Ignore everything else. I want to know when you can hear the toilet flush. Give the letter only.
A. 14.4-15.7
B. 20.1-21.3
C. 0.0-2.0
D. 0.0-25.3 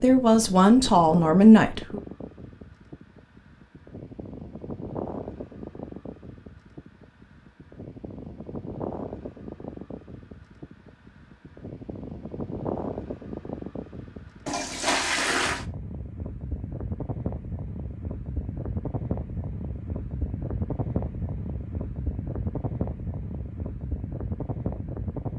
A.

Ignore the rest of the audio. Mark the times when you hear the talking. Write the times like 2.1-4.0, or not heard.
0.0-2.0.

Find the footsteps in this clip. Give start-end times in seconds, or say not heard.
not heard.